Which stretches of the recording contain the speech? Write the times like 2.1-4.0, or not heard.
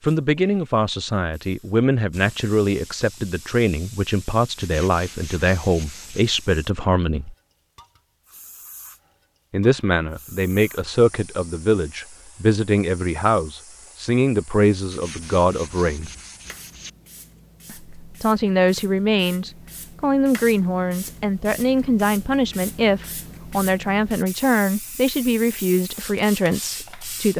0.0-7.3, 9.5-16.1, 17.7-27.3.